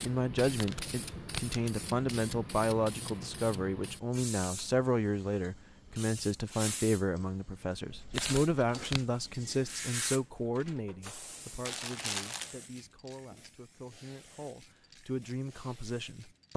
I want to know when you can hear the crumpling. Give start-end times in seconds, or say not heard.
0.5-1.8, 7.9-9.1, 11.7-12.6.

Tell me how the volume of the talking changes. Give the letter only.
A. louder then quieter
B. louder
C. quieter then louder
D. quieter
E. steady
D.